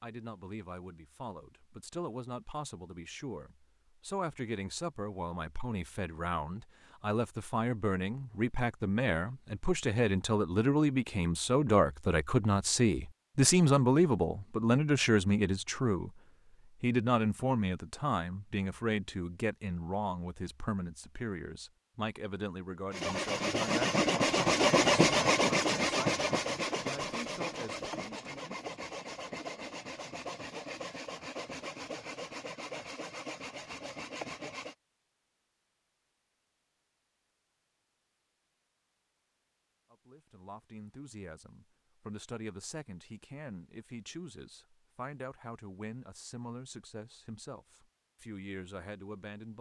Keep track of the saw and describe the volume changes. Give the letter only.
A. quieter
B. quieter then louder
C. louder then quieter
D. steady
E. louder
A.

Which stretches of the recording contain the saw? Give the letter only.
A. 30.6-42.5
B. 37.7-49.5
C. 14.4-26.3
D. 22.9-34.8
D.